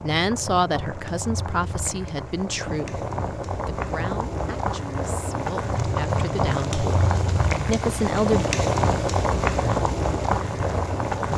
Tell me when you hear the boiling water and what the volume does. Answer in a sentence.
You can hear the boiling water from 0.0 to 11.3 s, getting louder.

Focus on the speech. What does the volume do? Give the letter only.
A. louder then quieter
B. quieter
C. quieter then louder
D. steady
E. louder
C.